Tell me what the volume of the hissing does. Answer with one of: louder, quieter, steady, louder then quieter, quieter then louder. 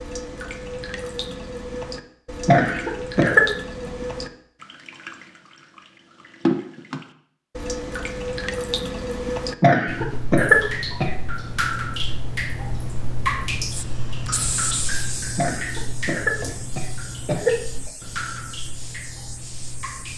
quieter.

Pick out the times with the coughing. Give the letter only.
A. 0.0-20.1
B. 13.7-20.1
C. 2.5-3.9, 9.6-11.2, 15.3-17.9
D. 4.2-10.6
C.